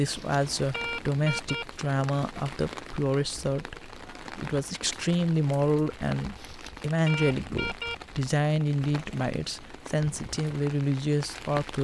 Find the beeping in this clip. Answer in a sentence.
The beeping can be heard from 0.1 to 1.6 s and from 6.3 to 8.0 s.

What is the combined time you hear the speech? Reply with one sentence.
You can hear the speech for 12 seconds altogether.